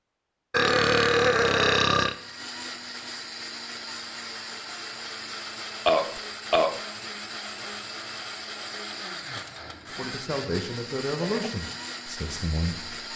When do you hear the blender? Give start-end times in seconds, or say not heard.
1.9-13.1.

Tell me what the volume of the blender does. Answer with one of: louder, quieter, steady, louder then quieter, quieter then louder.
steady.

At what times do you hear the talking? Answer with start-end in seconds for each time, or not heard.
9.8-13.1.